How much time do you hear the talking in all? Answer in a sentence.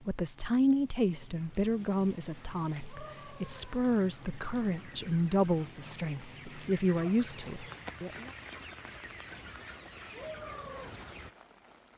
The talking can be heard for 8 seconds in total.